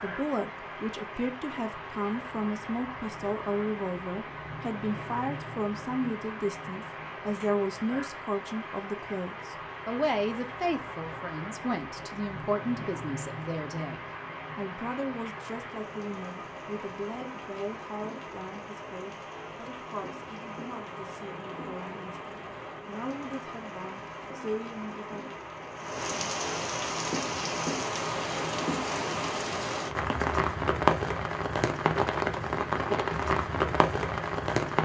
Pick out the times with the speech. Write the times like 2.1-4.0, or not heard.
0.0-25.4.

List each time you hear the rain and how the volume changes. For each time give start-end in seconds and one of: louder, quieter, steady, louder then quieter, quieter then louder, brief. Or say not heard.
0.0-34.8 louder.